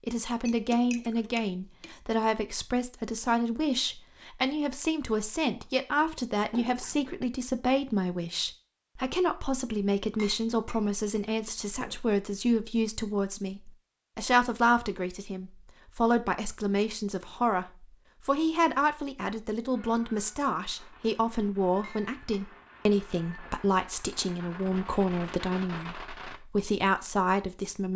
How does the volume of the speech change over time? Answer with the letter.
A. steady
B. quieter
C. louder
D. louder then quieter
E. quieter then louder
A.